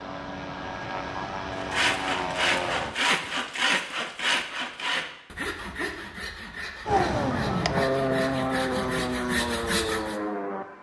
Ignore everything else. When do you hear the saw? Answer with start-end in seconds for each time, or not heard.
1.5-10.2.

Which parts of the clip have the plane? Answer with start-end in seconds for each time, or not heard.
0.0-3.0, 6.8-10.7.